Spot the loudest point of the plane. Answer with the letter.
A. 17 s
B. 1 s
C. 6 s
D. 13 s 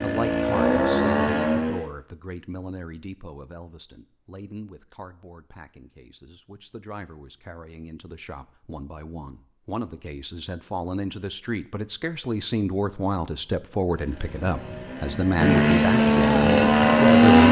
A.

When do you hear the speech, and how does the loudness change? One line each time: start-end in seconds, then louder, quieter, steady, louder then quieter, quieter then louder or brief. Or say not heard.
0.0-17.4 quieter then louder.